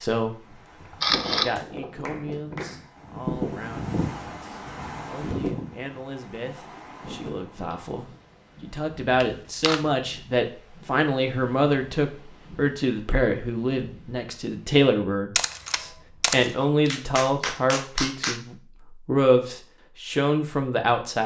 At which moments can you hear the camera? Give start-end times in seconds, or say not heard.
0.8-2.5, 9.2-9.8, 15.3-16.5.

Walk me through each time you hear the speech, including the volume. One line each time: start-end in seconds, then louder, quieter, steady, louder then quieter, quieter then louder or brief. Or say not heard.
0.0-21.2 louder.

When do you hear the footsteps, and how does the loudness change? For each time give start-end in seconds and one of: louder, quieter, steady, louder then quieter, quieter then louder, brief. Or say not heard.
not heard.